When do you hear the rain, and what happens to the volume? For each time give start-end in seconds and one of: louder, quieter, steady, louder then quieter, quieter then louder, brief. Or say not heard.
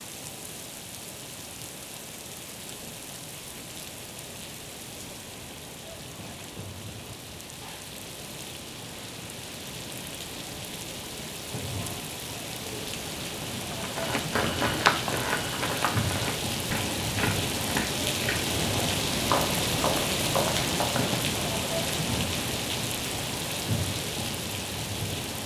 0.0-25.4 louder.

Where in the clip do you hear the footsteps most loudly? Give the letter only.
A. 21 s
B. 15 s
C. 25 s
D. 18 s
B.